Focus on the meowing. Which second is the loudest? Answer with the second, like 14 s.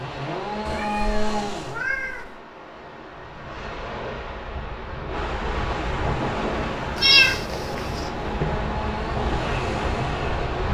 7 s.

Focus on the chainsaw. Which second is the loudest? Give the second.
1 s.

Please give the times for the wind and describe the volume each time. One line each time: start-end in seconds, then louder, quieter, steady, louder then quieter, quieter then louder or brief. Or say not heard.
0.0-10.6 louder.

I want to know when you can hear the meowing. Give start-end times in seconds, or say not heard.
0.7-2.4, 7.0-7.5.